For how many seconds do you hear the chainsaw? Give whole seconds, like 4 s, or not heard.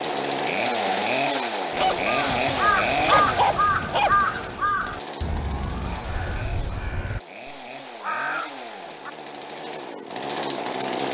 11 s.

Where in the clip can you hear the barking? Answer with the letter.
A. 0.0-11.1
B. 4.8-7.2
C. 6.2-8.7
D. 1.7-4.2
D.